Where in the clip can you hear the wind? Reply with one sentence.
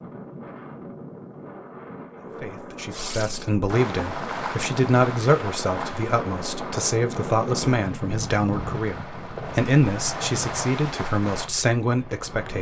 The wind can be heard from 0.0 to 12.5 s.